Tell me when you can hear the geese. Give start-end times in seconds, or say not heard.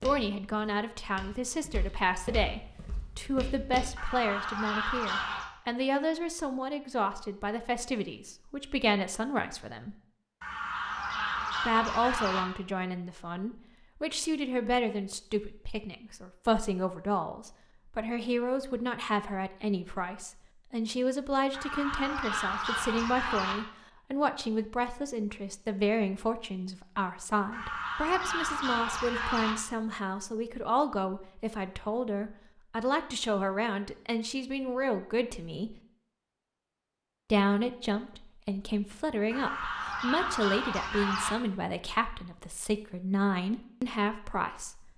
4.0-5.5, 10.4-12.4, 21.5-23.6, 27.5-29.6, 39.3-41.3.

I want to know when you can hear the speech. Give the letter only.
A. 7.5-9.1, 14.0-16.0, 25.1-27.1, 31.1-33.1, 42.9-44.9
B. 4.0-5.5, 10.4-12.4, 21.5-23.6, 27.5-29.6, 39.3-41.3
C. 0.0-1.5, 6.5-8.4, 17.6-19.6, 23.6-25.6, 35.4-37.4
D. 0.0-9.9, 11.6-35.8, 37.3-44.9
D.